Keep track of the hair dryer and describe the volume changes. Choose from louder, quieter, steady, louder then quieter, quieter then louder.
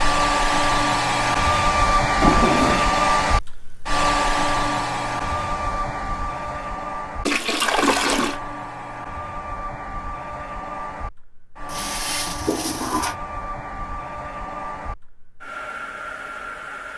quieter.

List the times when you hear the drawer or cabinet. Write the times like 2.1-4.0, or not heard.
not heard.